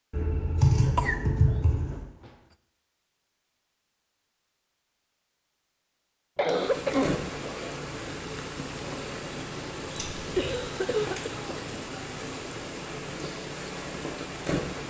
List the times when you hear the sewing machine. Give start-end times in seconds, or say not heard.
not heard.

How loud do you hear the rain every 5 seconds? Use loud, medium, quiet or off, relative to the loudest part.
off, loud, loud.